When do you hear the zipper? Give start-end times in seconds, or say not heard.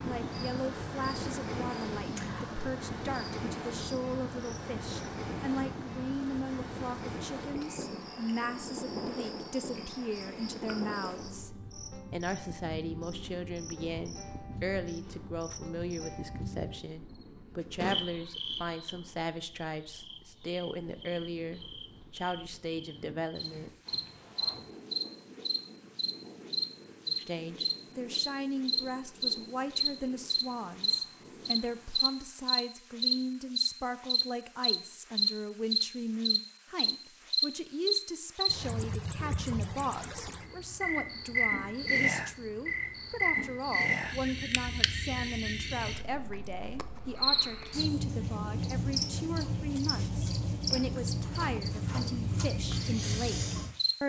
not heard.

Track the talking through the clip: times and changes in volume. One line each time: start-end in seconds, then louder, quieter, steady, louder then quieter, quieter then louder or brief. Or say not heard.
0.0-11.5 steady
12.1-23.7 steady
27.1-54.0 steady.